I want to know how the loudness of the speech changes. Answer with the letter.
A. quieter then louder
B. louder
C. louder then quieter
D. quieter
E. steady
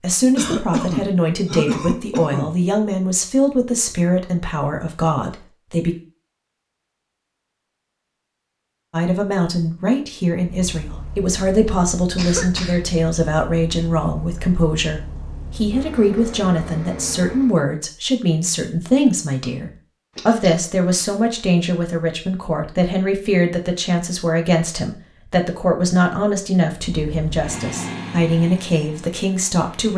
E.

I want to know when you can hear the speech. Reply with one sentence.
The speech can be heard from 0.0 to 6.0 s and from 8.9 to 29.9 s.